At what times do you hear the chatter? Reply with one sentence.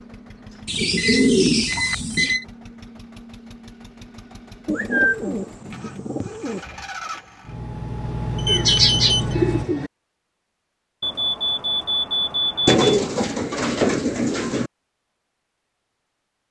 The chatter can't be heard in this clip.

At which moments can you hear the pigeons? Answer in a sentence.
The pigeons can be heard from 0.7 to 2.4 s, from 4.7 to 6.6 s, from 8.4 to 9.9 s and from 12.7 to 14.7 s.